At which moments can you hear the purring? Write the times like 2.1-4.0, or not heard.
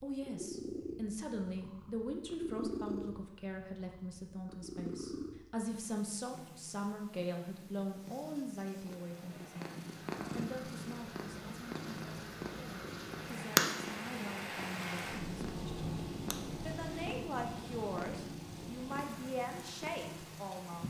0.0-20.8.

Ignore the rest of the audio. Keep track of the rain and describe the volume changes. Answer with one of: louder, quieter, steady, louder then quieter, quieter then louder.
louder then quieter.